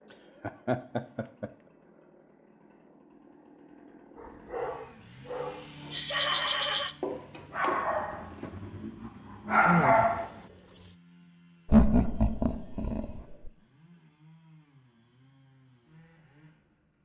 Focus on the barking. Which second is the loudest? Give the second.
10 s.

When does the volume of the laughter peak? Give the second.
12 s.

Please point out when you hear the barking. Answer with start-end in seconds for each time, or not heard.
4.2-10.9.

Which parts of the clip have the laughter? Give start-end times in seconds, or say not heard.
0.4-1.5, 5.9-6.9, 11.7-13.5.